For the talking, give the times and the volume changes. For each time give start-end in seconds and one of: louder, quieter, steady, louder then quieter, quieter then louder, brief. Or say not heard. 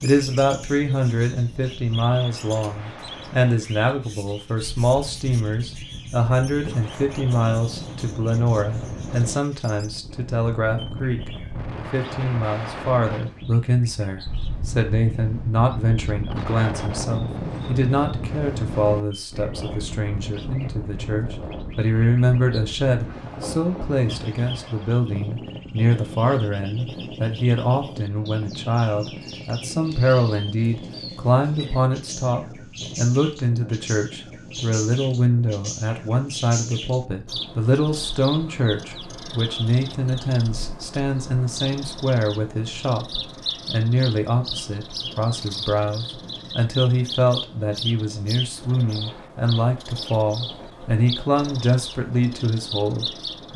0.0-11.3 steady
11.9-53.5 steady.